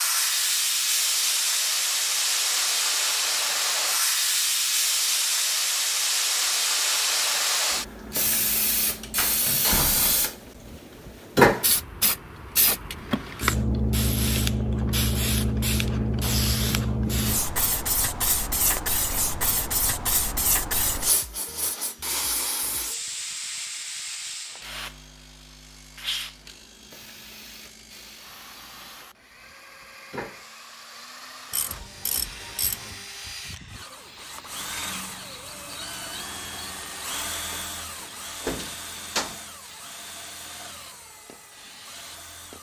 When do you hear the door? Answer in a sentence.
The door can be heard from 9.2 to 10.2 s, from 18.6 to 19.0 s and from 38.0 to 39.4 s.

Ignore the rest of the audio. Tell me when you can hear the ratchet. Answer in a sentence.
You can hear the ratchet from 31.5 to 33.0 s.